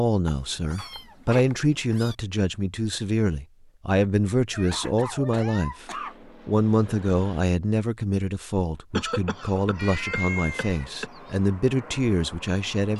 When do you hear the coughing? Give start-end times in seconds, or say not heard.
0.8-1.9, 4.7-6.3, 8.9-11.1.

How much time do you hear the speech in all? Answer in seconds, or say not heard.
13 s.